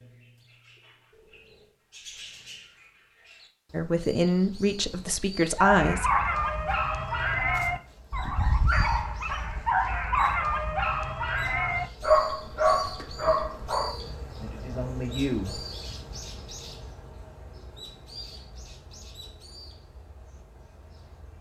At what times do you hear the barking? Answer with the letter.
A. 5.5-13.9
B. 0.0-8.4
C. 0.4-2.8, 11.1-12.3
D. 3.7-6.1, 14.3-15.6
A.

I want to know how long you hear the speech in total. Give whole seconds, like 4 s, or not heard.
4 s.